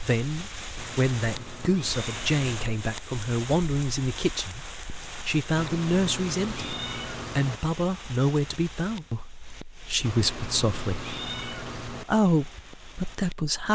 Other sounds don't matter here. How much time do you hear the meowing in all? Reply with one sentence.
You can hear the meowing for 6 seconds altogether.